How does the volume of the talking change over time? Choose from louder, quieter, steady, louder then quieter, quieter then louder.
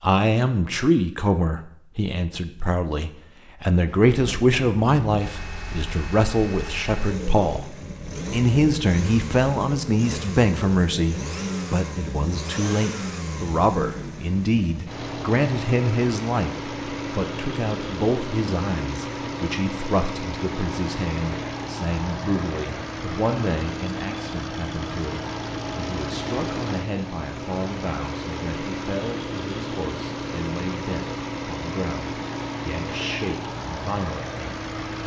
quieter.